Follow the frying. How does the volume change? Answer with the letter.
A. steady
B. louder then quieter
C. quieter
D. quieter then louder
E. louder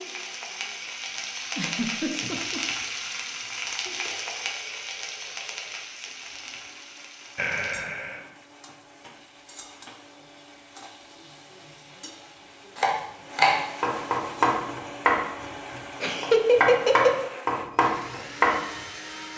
C.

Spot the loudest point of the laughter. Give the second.
16 s.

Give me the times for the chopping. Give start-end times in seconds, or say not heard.
12.8-18.8.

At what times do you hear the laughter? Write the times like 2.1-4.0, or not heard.
1.6-2.6, 7.3-8.2, 16.0-17.3.